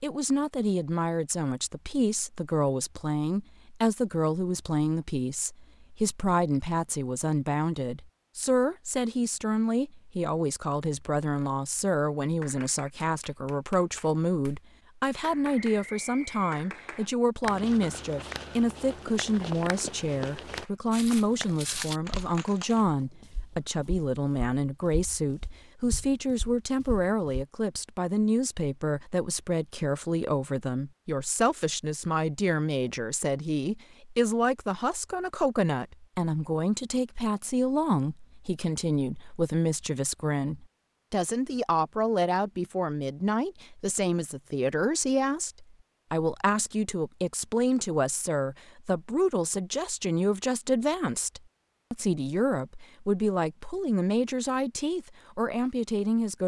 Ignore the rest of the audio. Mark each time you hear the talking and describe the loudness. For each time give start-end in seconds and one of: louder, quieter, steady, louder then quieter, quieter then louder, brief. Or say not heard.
0.0-56.4 steady.